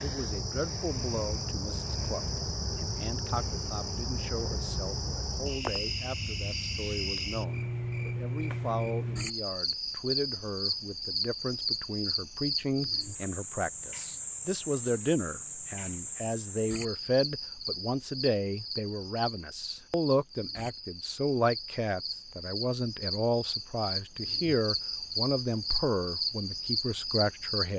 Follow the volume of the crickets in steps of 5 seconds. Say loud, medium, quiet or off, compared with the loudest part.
loud, loud, loud, medium, medium, loud.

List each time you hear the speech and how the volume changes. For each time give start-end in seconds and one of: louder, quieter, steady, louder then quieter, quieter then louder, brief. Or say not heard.
0.0-27.7 louder.